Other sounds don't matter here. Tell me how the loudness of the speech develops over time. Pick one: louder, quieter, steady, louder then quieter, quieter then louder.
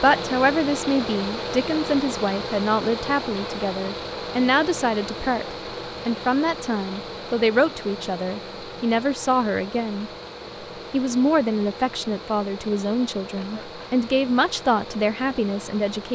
steady.